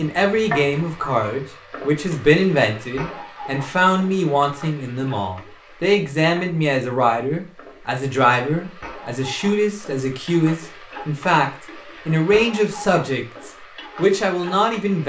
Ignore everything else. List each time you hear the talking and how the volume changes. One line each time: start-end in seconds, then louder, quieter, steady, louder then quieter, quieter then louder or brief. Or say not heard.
0.0-15.0 steady.